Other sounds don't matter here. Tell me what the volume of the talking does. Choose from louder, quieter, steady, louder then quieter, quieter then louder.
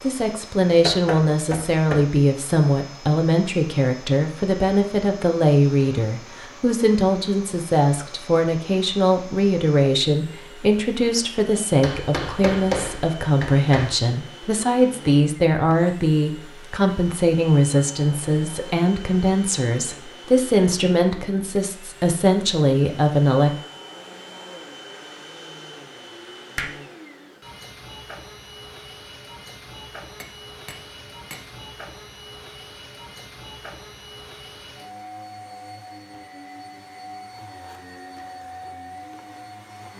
steady.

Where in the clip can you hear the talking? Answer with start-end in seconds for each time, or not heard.
0.0-23.6.